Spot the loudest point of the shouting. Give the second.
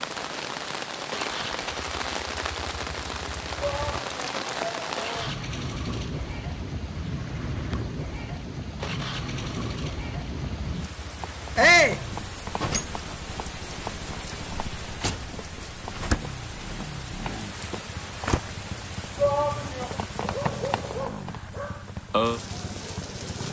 12 s.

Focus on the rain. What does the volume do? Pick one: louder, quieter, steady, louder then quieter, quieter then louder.
steady.